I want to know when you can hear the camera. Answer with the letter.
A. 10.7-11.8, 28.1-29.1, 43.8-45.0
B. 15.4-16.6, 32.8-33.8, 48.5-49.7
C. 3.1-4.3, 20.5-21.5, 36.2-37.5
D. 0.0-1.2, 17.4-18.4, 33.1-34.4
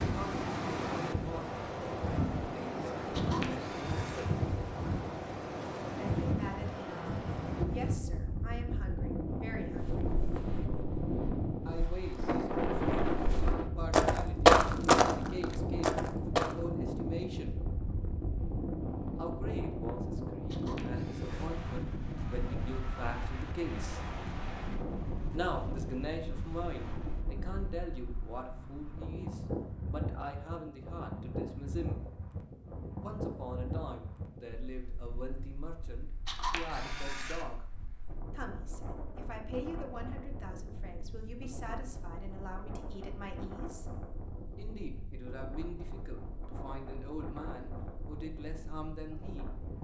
C.